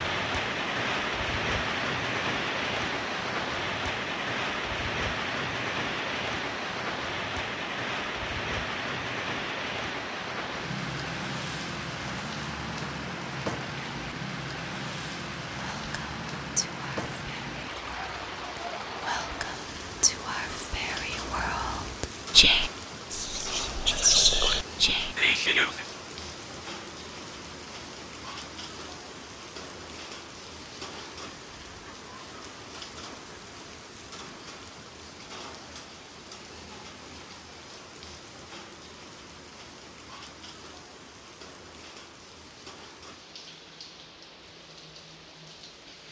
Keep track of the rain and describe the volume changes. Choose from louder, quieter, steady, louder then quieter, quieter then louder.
quieter.